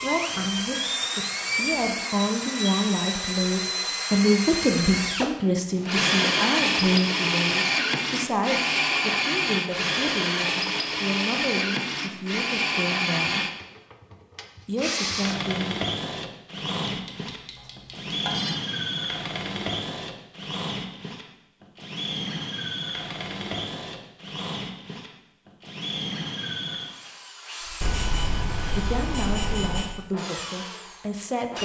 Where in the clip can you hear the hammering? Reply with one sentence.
You can't hear the hammering here.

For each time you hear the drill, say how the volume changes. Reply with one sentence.
The drill can be heard from 0.0 to 31.6 s, getting quieter.